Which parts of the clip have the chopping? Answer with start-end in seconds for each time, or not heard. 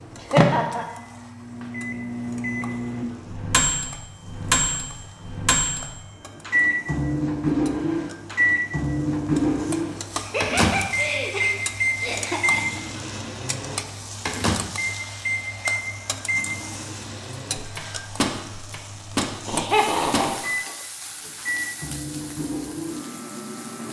not heard.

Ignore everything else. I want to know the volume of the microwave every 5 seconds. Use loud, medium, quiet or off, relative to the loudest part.
loud, loud, loud, medium, medium.